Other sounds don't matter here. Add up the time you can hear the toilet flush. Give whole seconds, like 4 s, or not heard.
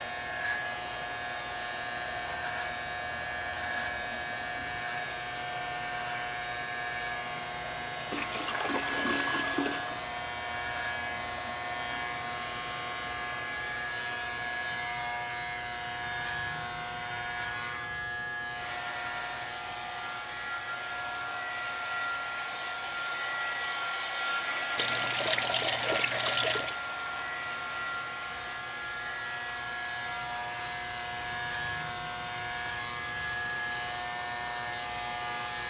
4 s.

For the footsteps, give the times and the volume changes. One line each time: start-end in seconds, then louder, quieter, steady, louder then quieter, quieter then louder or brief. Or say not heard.
not heard.